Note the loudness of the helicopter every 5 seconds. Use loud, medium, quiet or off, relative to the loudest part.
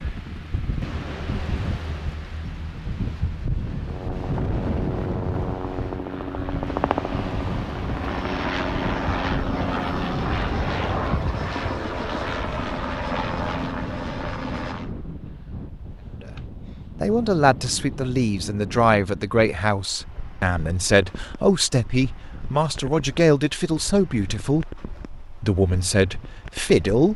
medium, loud, loud, off, off, off.